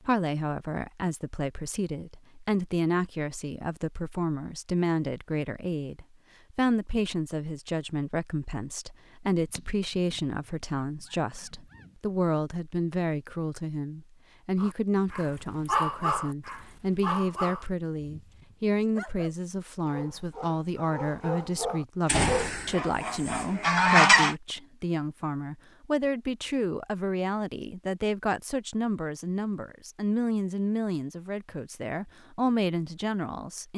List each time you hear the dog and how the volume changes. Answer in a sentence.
You can hear the dog from 14.6 to 22.6 s, getting quieter then louder.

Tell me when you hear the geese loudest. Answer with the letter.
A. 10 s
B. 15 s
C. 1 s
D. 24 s
D.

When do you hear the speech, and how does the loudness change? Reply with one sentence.
You can hear the speech from 0.1 to 33.7 s, at a steady volume.